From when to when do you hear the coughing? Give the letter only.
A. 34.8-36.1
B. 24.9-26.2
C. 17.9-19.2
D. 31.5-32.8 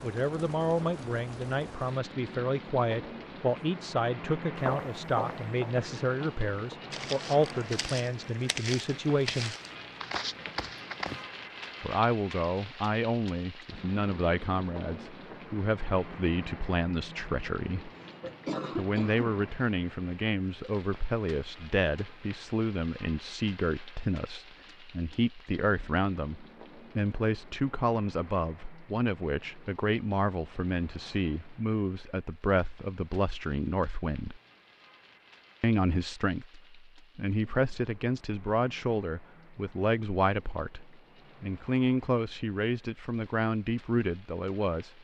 C.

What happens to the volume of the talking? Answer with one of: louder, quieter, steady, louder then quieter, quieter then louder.
steady.